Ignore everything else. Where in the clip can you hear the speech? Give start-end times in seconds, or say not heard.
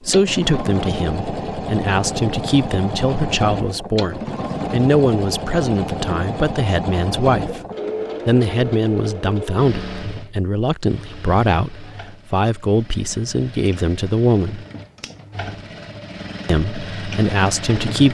0.1-7.6, 8.2-14.7, 16.4-18.0.